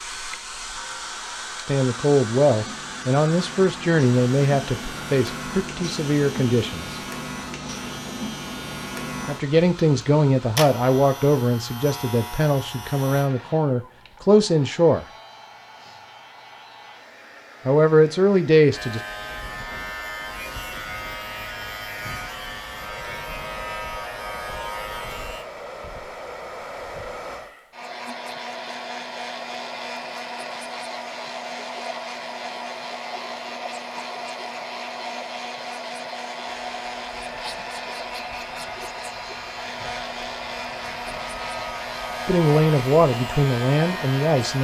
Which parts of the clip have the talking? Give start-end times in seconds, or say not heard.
1.6-7.0, 9.2-15.1, 17.6-19.0, 42.2-44.5.